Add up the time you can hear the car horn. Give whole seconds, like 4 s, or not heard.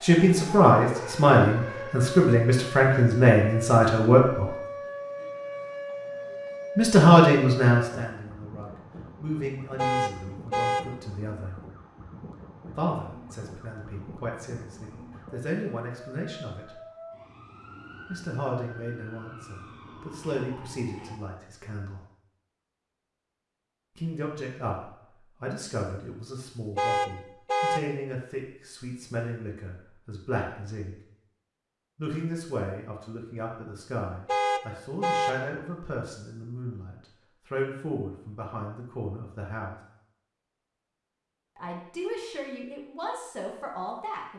3 s.